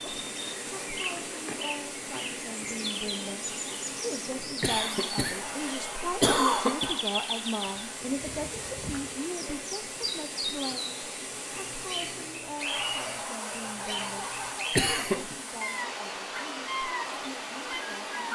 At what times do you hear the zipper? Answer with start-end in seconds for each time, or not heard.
not heard.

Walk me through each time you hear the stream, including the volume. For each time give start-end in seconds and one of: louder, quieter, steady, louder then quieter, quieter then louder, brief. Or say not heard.
0.0-18.3 steady.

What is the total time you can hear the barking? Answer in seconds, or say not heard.
4 s.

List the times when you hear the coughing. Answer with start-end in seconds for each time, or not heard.
4.6-7.0, 14.7-15.3.